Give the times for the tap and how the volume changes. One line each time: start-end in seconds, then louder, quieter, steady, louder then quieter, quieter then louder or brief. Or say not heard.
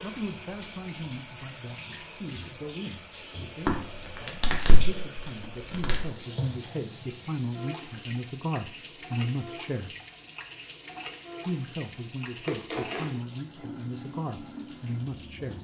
0.0-15.5 steady.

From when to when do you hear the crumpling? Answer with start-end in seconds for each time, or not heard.
3.6-6.0, 12.4-13.1.